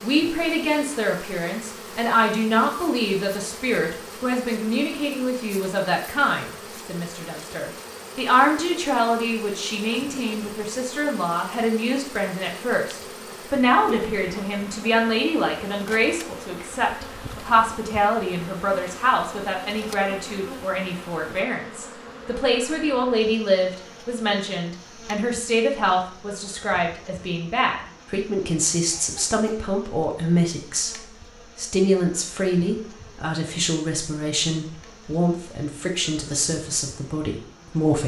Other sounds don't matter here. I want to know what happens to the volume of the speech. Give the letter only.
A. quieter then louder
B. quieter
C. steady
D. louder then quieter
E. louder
C.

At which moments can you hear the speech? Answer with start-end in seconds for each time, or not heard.
0.0-38.0.